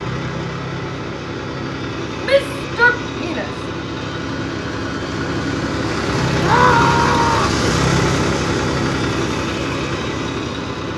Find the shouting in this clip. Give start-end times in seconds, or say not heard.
2.2-3.5, 6.4-7.6.